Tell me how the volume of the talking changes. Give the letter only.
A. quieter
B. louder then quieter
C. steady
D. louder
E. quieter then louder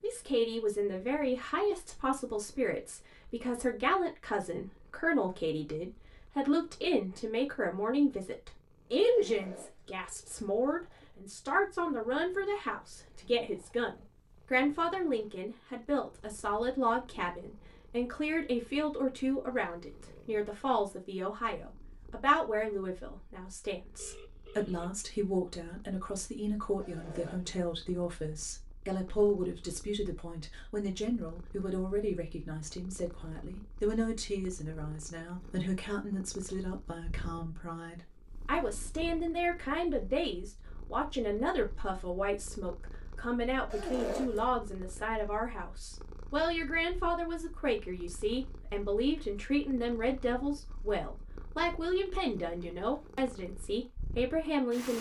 C.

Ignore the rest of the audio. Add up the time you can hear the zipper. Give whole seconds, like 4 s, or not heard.
2 s.